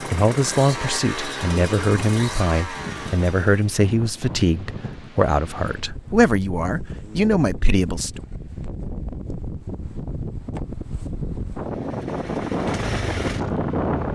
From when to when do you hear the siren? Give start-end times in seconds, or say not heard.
not heard.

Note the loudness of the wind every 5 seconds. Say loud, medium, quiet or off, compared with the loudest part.
medium, medium, loud.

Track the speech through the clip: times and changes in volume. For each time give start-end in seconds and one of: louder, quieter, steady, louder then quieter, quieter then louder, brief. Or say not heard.
0.0-8.2 steady.